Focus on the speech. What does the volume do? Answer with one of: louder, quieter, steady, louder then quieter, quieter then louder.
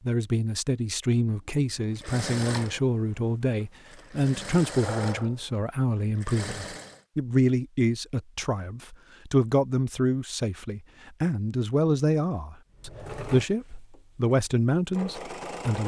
steady.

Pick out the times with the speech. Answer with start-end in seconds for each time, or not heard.
0.0-15.8.